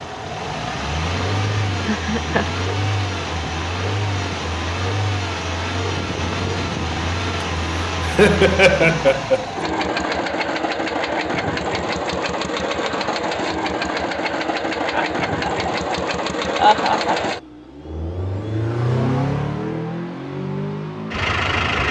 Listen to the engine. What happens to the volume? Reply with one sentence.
The volume of the engine stays about the same.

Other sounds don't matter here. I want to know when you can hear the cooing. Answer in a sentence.
You can't hear the cooing here.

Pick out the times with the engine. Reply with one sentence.
You can hear the engine from 0.0 to 21.8 s.